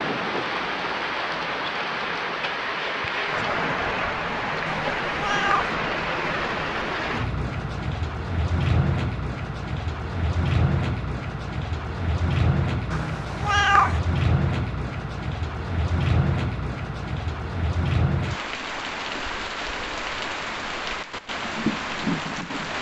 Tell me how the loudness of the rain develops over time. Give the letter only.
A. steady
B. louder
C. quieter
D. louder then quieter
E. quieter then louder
A.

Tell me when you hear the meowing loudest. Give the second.
14 s.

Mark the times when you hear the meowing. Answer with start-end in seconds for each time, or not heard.
4.7-5.8, 12.9-14.0.